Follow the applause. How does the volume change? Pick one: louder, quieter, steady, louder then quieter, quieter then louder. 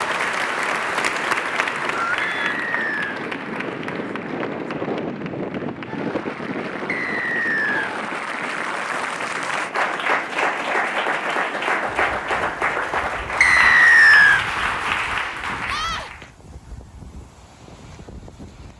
quieter then louder.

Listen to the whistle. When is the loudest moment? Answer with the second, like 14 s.
14 s.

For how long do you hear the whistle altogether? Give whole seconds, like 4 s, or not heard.
3 s.